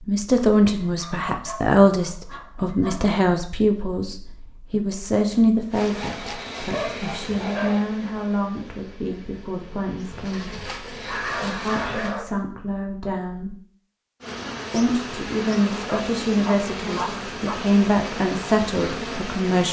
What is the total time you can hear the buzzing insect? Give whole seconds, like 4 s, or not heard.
12 s.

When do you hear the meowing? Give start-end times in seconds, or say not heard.
not heard.